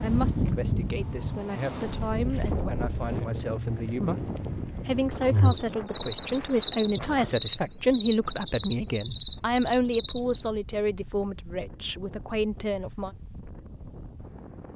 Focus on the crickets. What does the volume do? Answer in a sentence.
The volume of the crickets goes up.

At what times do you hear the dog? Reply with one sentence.
The dog can't be heard in this clip.